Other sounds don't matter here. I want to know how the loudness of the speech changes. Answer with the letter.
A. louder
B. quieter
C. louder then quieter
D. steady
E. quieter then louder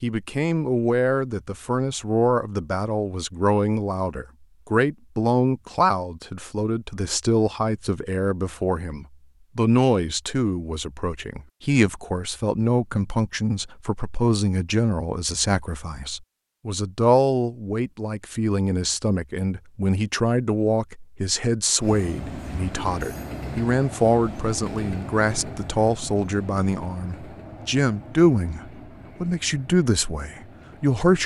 D.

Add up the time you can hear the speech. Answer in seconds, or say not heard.
31 s.